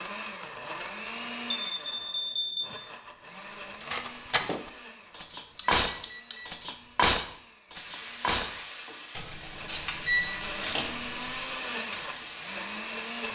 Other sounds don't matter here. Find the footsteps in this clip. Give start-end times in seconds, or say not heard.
not heard.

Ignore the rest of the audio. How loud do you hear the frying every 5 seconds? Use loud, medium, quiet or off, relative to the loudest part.
off, loud, loud.